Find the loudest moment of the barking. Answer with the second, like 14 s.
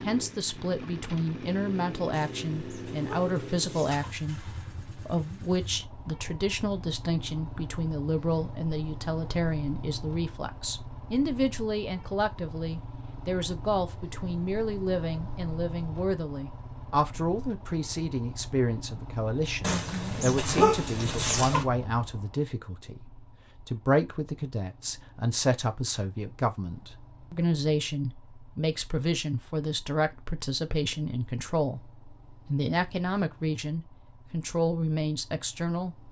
21 s.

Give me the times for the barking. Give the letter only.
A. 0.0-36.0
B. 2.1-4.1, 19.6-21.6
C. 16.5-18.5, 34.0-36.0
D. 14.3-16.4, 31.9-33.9
B.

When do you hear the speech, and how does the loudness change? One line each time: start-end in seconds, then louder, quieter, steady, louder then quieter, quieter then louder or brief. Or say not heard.
0.0-36.0 steady.